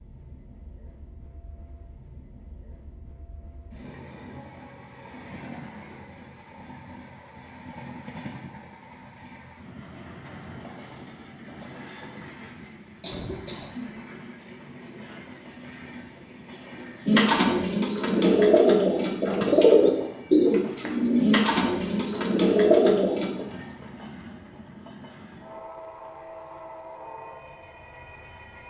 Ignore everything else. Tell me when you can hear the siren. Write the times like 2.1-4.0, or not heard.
not heard.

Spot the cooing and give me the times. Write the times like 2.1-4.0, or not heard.
17.1-23.4.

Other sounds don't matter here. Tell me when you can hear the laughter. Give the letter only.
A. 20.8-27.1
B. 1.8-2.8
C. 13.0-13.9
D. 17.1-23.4
C.